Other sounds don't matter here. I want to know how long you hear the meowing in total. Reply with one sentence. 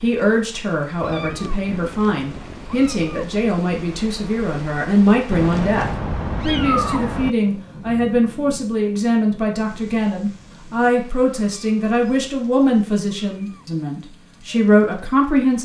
The meowing can be heard for 7 seconds in total.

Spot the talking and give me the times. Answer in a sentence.
The talking can be heard from 0.0 to 15.6 s.